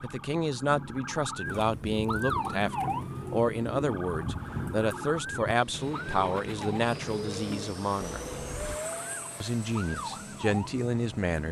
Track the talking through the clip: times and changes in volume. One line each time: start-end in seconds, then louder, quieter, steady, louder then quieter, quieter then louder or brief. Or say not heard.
0.0-8.4 steady
9.4-11.4 brief.